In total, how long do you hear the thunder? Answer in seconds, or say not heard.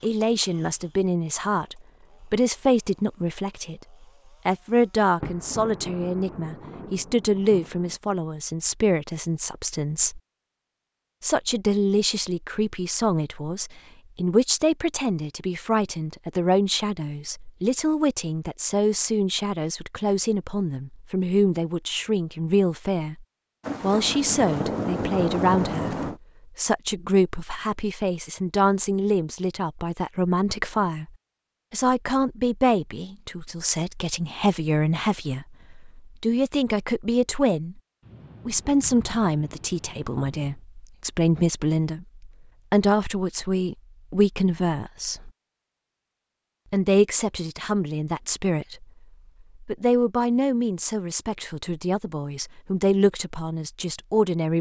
8 s.